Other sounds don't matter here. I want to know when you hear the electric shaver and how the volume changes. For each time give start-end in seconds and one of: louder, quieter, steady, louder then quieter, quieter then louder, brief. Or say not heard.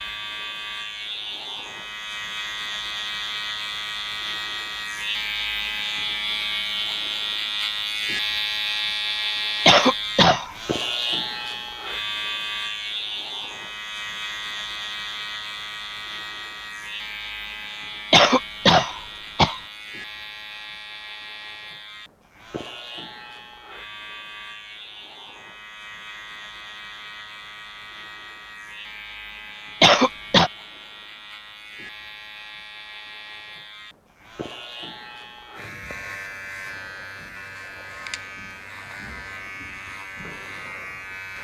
0.0-41.3 quieter.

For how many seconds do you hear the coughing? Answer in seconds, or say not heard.
3 s.